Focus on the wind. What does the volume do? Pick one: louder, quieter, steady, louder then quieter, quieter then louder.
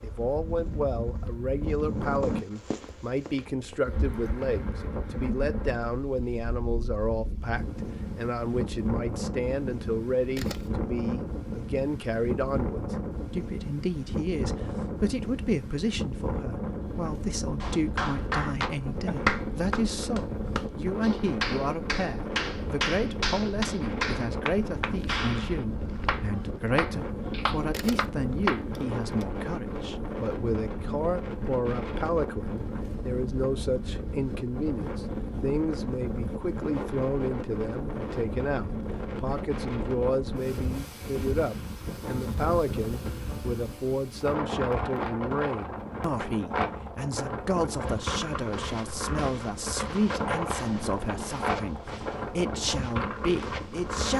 steady.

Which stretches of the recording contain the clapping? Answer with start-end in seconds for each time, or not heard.
17.6-28.6.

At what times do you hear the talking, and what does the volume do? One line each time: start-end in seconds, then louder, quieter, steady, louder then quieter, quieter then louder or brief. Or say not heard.
0.0-54.1 steady.